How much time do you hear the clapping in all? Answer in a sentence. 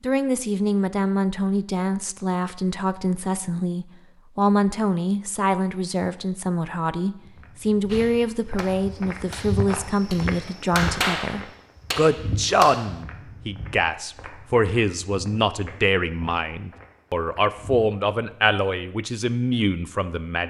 You can hear the clapping for 5 seconds altogether.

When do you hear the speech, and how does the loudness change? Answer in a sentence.
The speech can be heard from 0.0 to 20.4 s, at a steady volume.